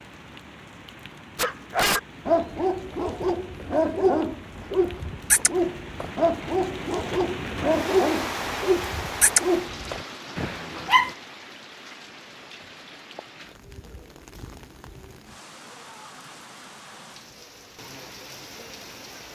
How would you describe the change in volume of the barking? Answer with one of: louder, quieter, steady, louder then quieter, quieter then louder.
steady.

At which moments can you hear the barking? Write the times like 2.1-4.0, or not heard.
1.4-11.2.